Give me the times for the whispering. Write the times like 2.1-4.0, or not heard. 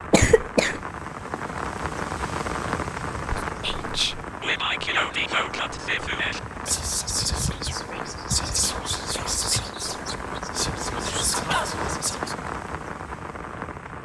3.2-12.3.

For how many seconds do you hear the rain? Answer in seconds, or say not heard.
14 s.